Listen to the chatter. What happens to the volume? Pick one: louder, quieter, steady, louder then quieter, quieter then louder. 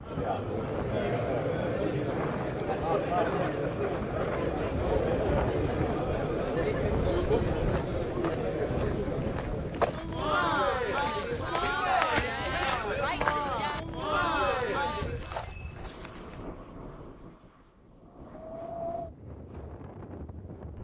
steady.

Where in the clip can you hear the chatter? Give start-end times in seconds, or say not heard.
0.0-15.4.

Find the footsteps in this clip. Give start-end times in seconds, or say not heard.
6.4-16.4.